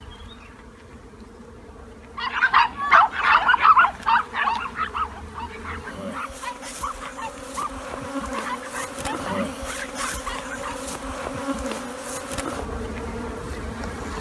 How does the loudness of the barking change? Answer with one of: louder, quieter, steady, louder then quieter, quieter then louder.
quieter.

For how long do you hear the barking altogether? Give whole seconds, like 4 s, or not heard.
9 s.